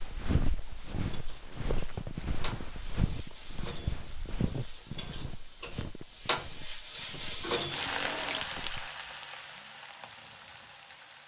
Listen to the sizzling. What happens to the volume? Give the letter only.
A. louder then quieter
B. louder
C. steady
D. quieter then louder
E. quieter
A.